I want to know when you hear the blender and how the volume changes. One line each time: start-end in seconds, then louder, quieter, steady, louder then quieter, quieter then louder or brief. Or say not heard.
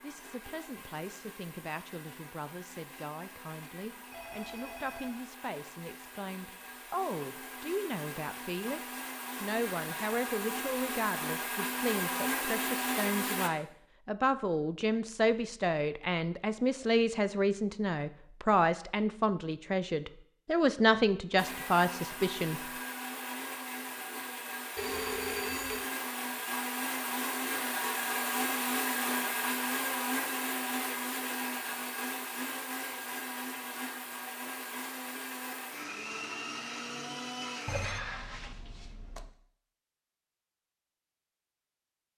0.0-13.5 louder
21.4-37.9 louder then quieter.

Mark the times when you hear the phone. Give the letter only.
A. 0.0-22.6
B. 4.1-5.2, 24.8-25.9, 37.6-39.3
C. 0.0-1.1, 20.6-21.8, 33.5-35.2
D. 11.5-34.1
B.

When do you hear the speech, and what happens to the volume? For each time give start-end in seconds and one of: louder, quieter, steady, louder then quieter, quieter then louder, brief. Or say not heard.
0.0-22.6 louder.